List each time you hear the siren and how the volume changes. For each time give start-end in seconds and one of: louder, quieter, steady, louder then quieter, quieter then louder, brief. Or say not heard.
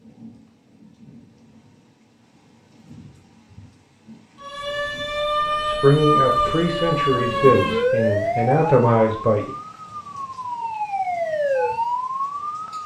4.4-12.8 quieter then louder.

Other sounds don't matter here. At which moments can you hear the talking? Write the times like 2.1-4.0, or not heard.
5.7-9.5.